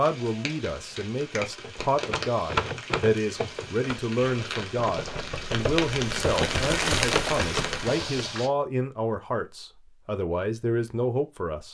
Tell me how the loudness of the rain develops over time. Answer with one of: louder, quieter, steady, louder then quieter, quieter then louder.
louder.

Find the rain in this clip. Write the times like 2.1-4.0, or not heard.
0.0-8.5.